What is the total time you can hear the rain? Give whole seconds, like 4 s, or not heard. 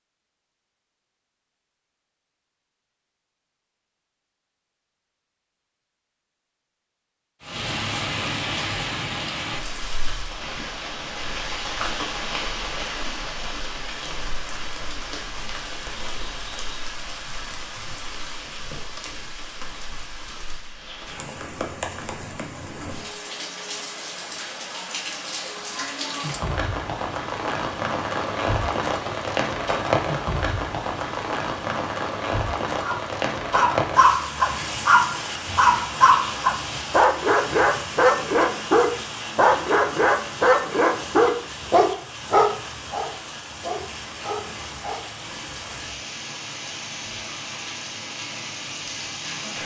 42 s.